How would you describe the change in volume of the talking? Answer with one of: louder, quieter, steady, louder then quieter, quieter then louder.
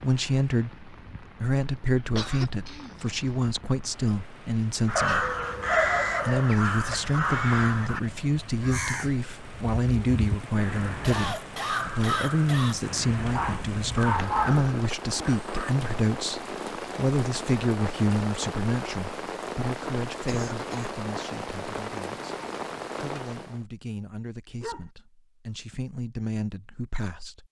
quieter.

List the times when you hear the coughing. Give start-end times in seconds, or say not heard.
2.1-3.5, 10.4-12.8, 20.2-20.9.